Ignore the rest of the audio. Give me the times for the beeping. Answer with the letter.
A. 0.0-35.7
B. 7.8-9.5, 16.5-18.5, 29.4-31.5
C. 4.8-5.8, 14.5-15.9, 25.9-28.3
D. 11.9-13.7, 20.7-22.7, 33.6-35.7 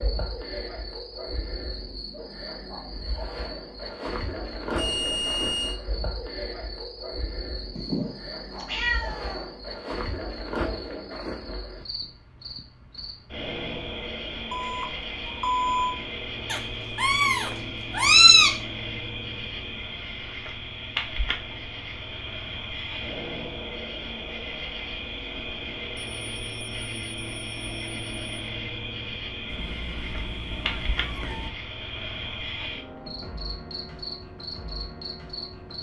C.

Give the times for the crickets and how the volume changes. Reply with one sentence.
You can hear the crickets from 0.0 to 35.7 s, at a steady volume.